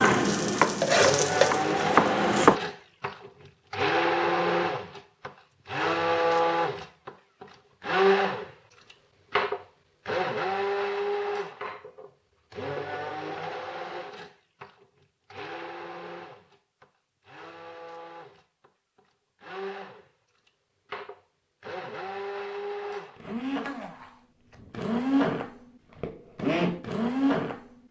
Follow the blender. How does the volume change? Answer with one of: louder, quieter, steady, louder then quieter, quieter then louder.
quieter then louder.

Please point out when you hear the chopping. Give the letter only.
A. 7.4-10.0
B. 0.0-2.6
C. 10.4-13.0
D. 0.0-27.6
B.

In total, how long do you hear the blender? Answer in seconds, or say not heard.
28 s.